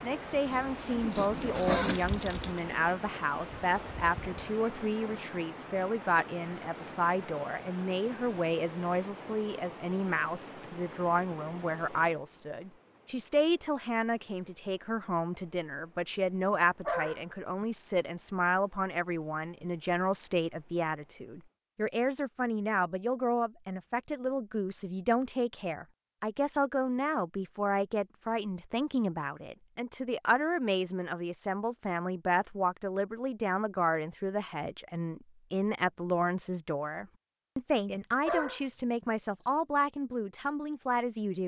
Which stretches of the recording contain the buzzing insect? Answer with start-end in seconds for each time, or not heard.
0.0-5.3.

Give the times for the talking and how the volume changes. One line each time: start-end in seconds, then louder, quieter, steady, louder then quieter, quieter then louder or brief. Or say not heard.
0.0-41.4 steady.